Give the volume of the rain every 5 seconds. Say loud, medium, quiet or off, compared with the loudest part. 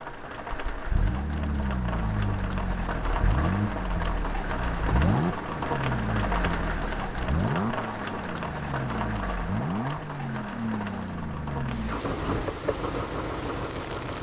loud, loud, medium.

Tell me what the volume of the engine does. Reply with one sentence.
The loudness of the engine stays about the same.